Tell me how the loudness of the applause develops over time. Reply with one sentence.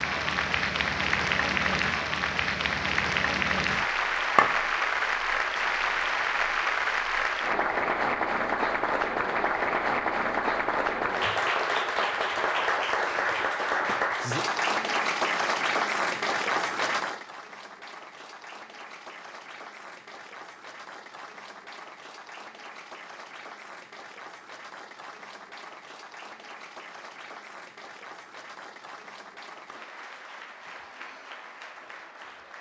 The loudness of the applause goes down.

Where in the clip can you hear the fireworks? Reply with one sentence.
You can't hear the fireworks here.